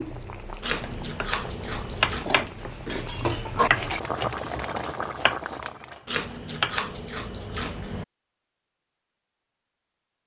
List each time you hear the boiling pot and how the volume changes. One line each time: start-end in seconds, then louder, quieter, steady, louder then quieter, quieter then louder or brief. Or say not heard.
0.0-6.0 louder.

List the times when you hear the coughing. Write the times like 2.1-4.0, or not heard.
2.2-3.7.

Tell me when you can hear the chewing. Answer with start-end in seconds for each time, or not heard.
0.6-2.3, 6.0-8.1.